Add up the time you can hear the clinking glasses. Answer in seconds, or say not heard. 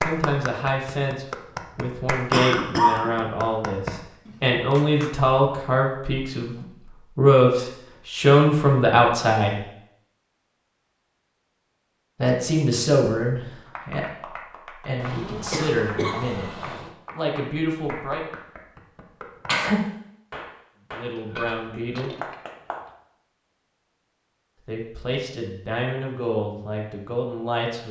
2 s.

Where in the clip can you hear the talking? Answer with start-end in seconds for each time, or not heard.
0.0-9.6, 12.2-18.2, 20.9-22.1, 24.6-27.8.